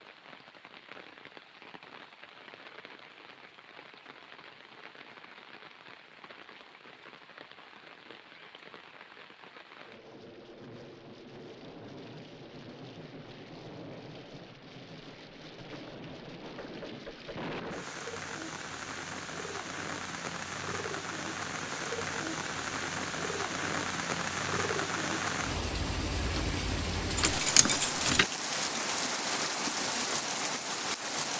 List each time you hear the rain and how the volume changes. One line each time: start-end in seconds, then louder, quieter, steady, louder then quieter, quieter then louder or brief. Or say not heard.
0.0-31.3 louder.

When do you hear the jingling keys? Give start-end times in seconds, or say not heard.
27.1-28.2.